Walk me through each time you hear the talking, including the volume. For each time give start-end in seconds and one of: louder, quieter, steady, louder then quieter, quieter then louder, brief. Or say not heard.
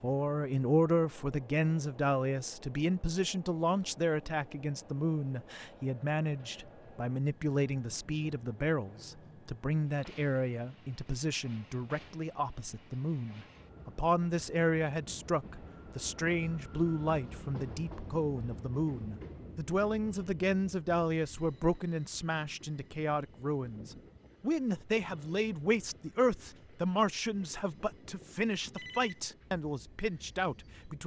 0.0-31.0 steady.